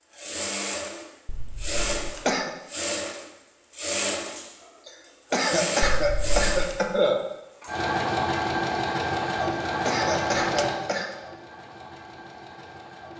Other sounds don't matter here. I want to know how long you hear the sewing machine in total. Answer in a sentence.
The sewing machine can be heard for 13 seconds in total.